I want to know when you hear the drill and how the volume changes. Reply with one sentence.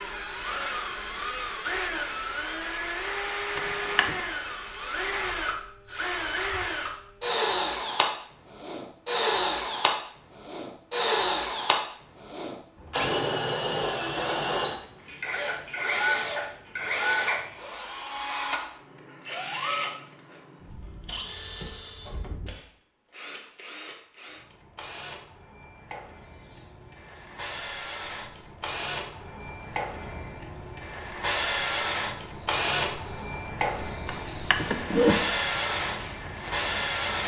The drill can be heard from 0.0 to 37.2 s, getting quieter then louder.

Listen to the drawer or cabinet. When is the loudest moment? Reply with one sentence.
The volume of the drawer or cabinet peaks at 35 seconds.